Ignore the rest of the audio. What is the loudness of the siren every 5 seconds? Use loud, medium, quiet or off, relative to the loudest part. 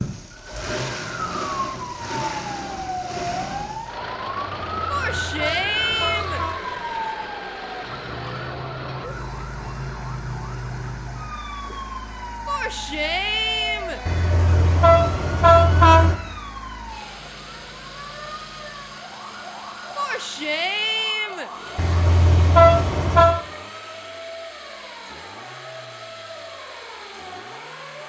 loud, loud, loud, medium, medium, medium.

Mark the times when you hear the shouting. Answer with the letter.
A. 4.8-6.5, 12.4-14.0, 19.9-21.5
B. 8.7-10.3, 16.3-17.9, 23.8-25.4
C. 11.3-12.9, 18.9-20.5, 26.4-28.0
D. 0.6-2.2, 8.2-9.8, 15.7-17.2
A.